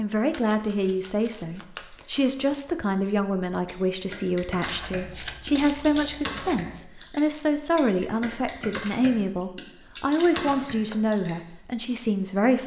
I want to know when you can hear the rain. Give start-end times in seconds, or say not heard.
not heard.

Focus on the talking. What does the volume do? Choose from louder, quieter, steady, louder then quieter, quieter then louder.
steady.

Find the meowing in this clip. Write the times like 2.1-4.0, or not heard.
not heard.